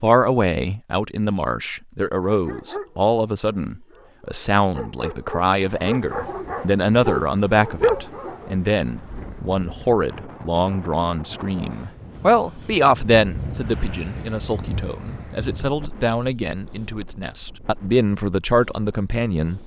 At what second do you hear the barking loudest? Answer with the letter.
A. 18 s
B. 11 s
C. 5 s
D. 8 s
D.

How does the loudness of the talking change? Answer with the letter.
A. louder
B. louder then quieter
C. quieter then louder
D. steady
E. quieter
D.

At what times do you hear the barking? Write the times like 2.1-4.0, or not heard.
2.2-8.6.